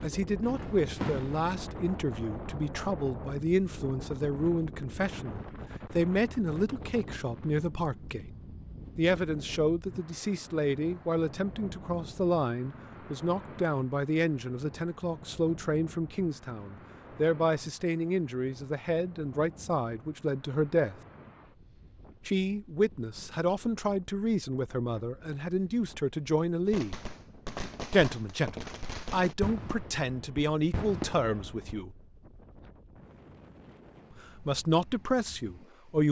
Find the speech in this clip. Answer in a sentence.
The speech can be heard from 0.0 to 8.3 s, from 8.9 to 20.9 s, from 22.2 to 26.9 s, from 27.9 to 31.9 s and from 34.2 to 36.0 s.